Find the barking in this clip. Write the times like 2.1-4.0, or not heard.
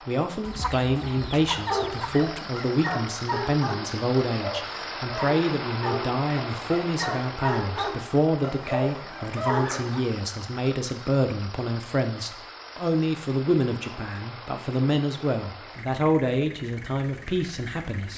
1.4-10.0.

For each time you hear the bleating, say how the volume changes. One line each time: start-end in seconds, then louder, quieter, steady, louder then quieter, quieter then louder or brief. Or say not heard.
not heard.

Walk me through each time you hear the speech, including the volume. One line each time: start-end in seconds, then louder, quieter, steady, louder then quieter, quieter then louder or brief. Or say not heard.
0.1-18.1 steady.